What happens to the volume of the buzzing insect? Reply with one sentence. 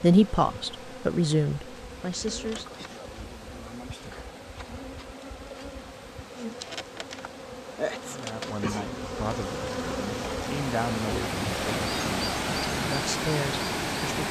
The volume of the buzzing insect goes up.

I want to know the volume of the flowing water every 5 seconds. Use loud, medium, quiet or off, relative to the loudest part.
quiet, quiet, loud.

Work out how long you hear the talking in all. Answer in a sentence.
You can hear the talking for 9 seconds altogether.